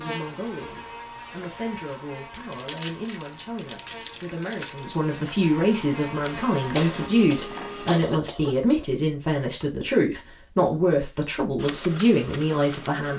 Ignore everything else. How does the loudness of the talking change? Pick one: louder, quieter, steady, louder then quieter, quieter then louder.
louder.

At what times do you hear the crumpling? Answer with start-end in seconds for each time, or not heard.
2.3-4.8.